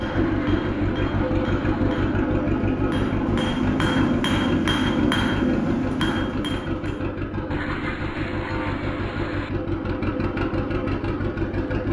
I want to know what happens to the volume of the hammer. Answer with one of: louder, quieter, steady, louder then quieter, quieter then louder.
louder.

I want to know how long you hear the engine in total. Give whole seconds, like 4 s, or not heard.
12 s.